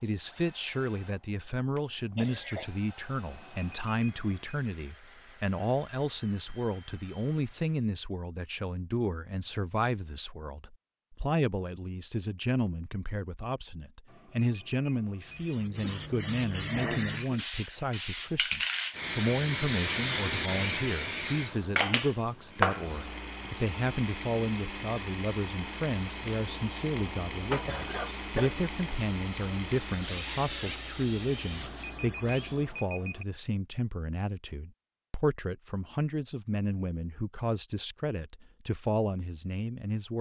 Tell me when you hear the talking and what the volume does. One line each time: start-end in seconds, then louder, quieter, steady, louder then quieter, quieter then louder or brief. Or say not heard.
0.0-40.1 steady.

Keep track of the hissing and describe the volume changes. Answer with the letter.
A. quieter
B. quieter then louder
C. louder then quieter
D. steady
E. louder
A.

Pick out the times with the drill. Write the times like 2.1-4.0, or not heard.
0.0-7.9, 22.3-32.6.